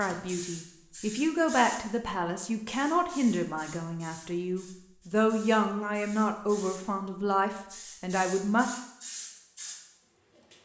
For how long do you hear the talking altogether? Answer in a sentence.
You can hear the talking for 9 seconds altogether.